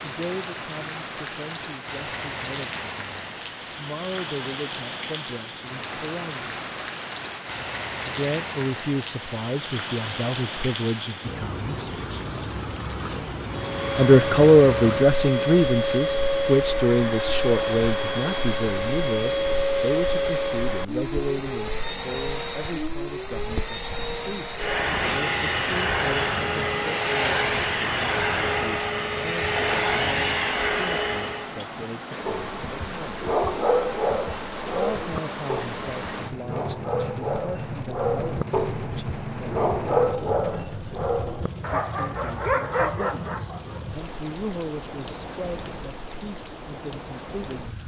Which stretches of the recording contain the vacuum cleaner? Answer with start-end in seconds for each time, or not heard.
13.4-31.6.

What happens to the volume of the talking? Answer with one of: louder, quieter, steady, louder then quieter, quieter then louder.
louder then quieter.